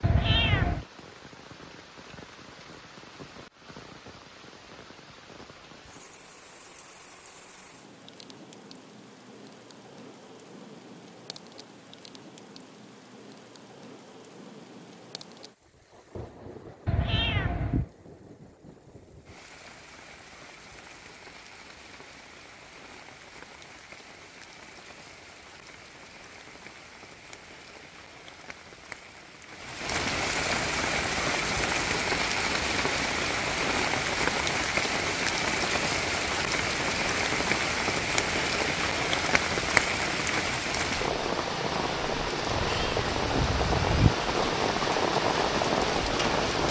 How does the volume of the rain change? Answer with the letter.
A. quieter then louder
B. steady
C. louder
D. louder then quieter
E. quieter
C.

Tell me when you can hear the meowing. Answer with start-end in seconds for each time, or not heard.
0.0-0.8, 16.9-17.9, 42.5-44.1.